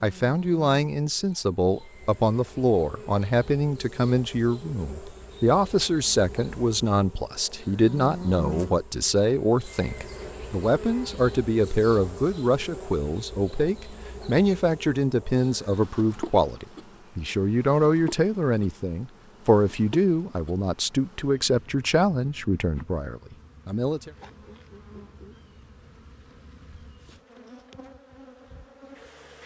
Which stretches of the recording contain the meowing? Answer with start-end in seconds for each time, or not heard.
not heard.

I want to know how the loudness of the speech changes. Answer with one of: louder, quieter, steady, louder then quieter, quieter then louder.
steady.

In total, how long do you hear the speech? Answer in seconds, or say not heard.
24 s.